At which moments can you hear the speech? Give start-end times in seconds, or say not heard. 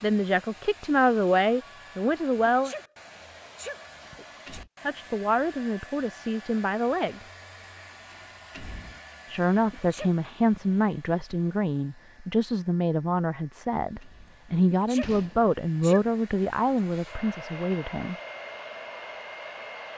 0.0-2.8, 4.8-7.2, 9.3-18.1.